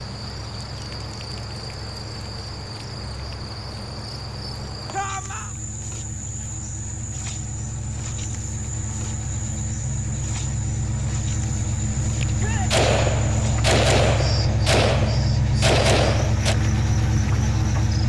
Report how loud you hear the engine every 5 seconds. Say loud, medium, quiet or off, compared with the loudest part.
quiet, medium, loud, loud.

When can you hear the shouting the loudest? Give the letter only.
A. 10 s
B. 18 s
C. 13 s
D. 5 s
D.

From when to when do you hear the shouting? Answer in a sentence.
You can hear the shouting from 4.9 to 5.5 s and from 12.3 to 12.8 s.